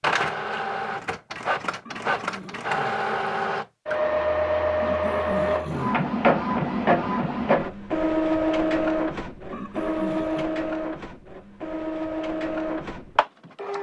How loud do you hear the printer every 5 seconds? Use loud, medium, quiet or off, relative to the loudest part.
loud, loud, medium.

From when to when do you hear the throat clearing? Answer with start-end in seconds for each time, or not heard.
1.9-3.0, 4.8-6.0, 9.5-10.4.